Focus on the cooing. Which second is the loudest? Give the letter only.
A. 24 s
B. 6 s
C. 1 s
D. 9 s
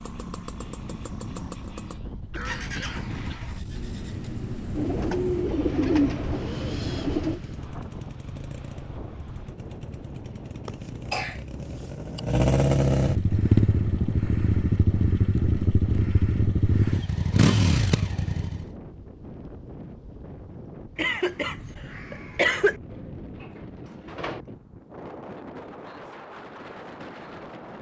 B.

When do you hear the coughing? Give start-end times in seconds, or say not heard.
2.3-3.4, 10.7-12.2, 20.9-22.8.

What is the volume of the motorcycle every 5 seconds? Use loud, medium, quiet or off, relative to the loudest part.
quiet, quiet, loud, loud, off, off.